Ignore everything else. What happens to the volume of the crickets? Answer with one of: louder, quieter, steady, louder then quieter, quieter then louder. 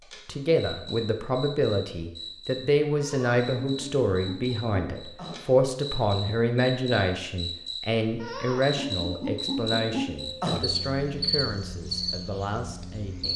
louder.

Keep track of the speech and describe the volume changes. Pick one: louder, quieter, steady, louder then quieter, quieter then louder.
quieter.